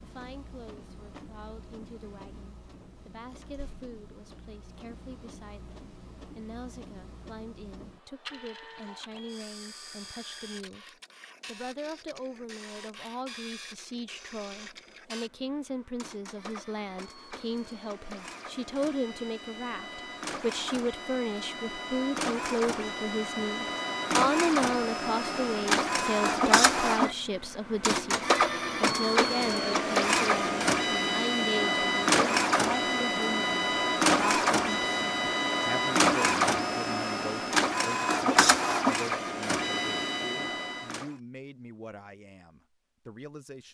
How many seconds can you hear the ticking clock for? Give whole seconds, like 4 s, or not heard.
not heard.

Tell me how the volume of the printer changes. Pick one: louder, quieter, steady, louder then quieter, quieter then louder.
louder.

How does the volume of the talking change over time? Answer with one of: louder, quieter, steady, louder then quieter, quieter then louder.
louder then quieter.